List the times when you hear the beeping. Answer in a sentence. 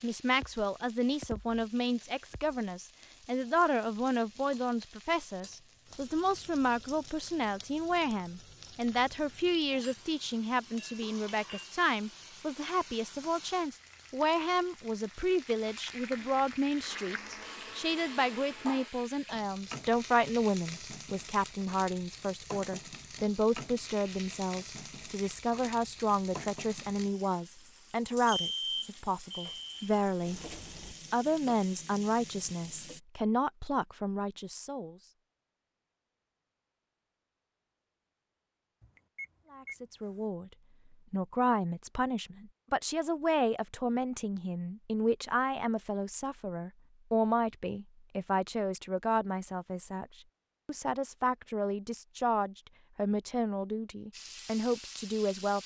You can hear the beeping from 11.0 to 11.7 s, from 28.2 to 29.9 s and from 38.8 to 40.1 s.